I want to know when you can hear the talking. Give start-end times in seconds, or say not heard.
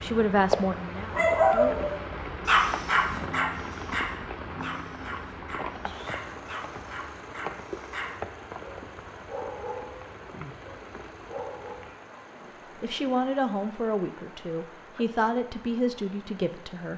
0.0-1.8, 12.8-16.9.